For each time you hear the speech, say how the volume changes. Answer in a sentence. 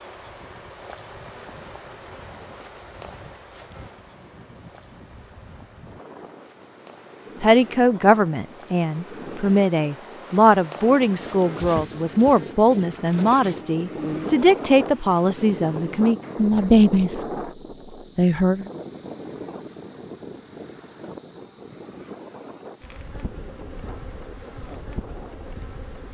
The speech can be heard from 7.4 to 17.2 s, at a steady volume; and briefly from 18.1 to 18.7 s.